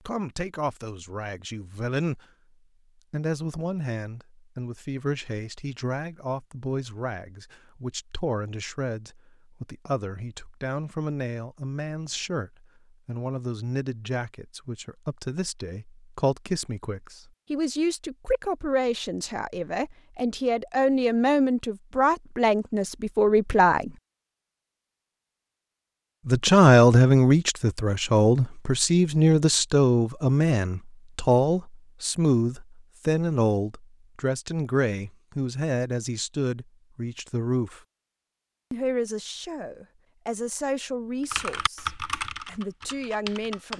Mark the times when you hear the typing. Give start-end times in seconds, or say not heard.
41.3-43.7.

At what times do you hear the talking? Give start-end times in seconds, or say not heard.
0.1-2.2, 3.1-23.9, 26.2-37.8, 38.7-43.7.